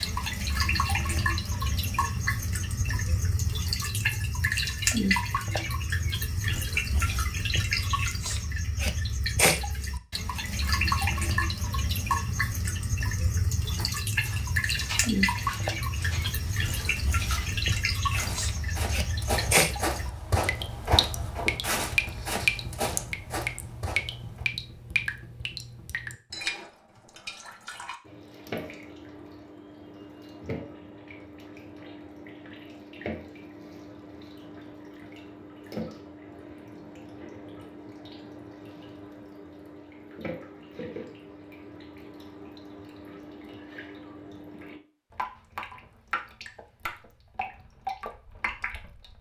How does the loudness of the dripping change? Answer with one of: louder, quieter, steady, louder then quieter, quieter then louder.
quieter.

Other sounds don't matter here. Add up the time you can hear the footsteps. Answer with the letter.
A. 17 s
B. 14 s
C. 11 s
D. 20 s
C.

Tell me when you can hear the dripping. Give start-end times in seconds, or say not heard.
0.0-49.1.